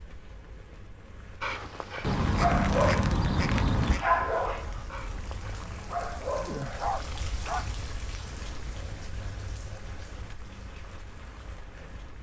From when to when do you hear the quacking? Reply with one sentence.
You can hear the quacking from 2.0 to 4.0 s.